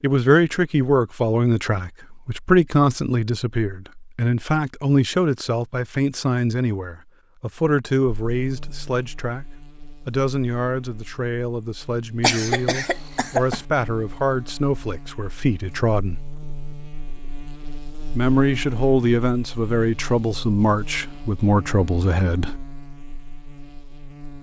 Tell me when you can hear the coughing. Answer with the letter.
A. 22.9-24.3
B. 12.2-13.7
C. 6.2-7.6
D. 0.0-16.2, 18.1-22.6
B.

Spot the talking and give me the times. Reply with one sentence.
The talking can be heard from 0.0 to 16.2 s and from 18.1 to 22.6 s.